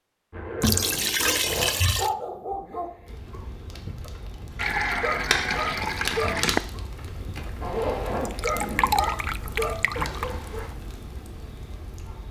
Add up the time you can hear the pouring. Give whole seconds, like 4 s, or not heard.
6 s.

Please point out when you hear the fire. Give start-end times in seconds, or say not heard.
3.0-12.2.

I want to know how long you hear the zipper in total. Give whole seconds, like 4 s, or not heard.
3 s.